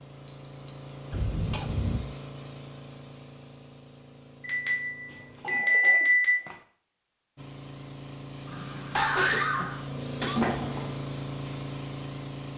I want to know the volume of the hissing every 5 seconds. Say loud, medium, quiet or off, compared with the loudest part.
medium, medium, loud.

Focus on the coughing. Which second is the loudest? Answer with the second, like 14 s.
9 s.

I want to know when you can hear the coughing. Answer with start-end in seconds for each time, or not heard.
1.1-2.0, 5.0-6.6, 8.4-10.4.